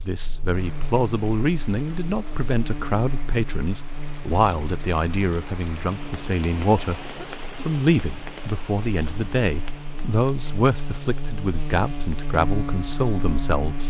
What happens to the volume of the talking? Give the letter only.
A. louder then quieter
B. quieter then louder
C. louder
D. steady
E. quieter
D.